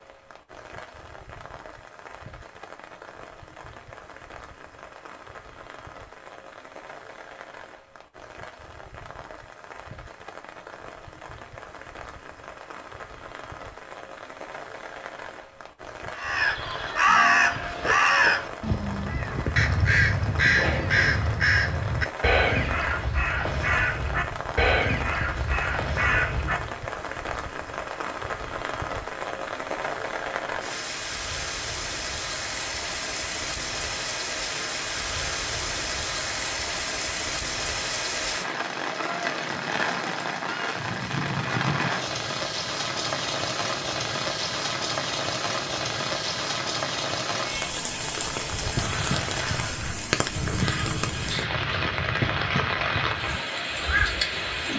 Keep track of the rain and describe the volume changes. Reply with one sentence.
The loudness of the rain goes up.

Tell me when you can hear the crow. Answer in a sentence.
The crow can be heard from 16.1 to 26.6 s and from 48.6 to 54.7 s.